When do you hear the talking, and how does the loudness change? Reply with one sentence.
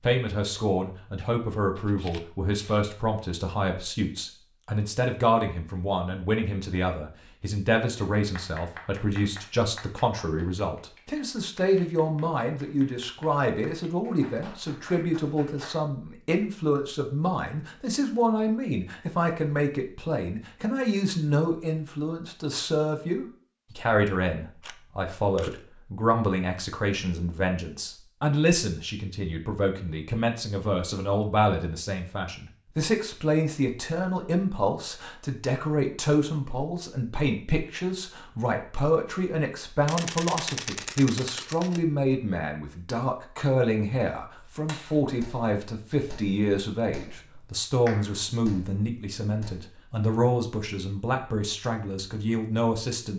The talking can be heard from 0.0 to 53.1 s, at a steady volume.